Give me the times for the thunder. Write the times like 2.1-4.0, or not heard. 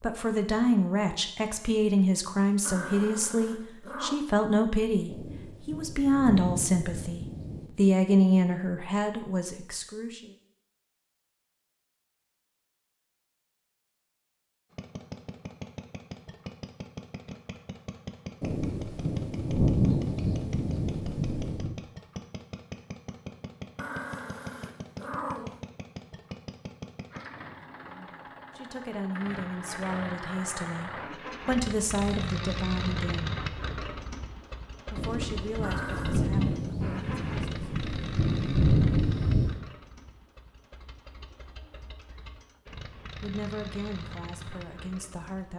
5.0-7.7, 18.4-21.7, 35.0-39.5.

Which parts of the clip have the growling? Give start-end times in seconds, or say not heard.
2.6-4.2, 23.8-25.6, 35.6-36.2.